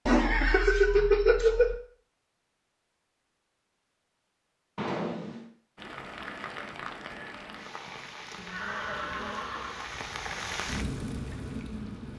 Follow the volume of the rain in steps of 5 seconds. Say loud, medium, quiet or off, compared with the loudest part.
off, medium, loud.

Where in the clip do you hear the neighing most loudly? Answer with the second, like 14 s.
1 s.